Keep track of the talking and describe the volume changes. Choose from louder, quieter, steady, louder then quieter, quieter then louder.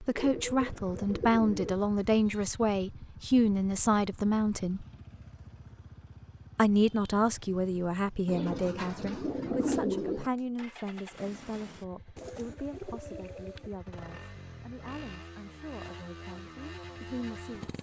quieter.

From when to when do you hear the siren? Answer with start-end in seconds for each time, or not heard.
not heard.